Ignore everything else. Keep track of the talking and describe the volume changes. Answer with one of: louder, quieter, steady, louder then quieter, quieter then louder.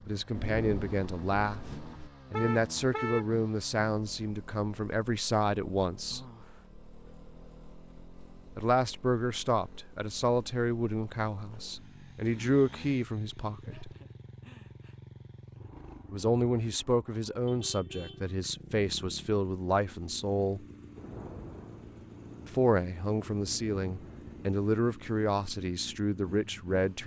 steady.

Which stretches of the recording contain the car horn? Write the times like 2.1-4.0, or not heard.
2.3-3.3, 17.4-18.6.